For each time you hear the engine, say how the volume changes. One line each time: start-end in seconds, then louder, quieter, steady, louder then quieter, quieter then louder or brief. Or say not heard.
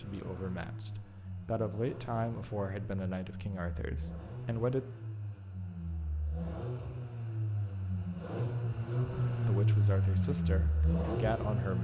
0.0-11.8 louder.